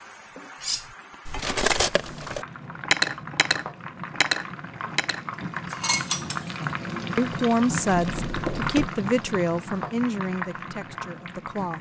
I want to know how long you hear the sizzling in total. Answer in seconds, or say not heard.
12 s.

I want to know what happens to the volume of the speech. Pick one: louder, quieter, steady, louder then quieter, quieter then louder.
quieter.